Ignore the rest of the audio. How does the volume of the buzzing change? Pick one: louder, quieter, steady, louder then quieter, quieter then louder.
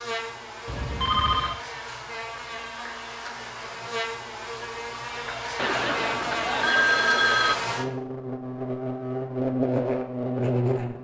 louder.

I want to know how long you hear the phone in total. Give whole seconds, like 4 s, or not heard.
3 s.